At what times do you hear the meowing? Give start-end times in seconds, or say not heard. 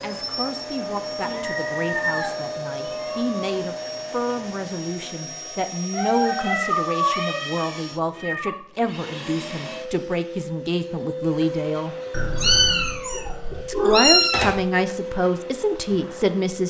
1.2-3.5, 5.9-8.6, 12.1-14.6.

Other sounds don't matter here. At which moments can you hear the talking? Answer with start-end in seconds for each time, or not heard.
0.0-11.9, 13.7-16.6.